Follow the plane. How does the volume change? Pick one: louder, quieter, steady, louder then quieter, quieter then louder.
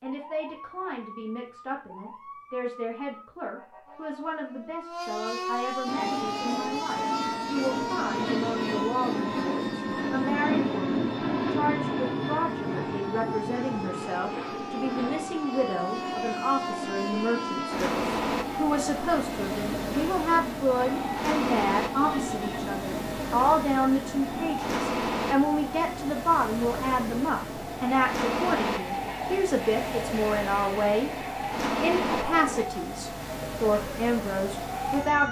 quieter.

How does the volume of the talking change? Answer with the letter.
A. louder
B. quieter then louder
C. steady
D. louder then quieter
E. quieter
A.